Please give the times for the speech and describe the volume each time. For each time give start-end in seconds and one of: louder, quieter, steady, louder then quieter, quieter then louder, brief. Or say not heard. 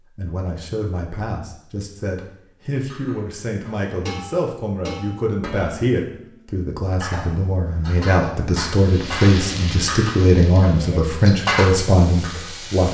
0.1-12.8 louder.